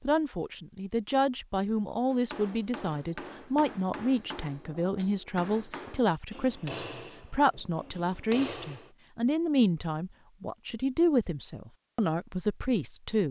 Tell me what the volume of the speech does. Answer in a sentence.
The volume of the speech stays about the same.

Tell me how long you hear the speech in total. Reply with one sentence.
The speech can be heard for 13 seconds in total.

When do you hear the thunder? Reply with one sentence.
The thunder can't be heard in this clip.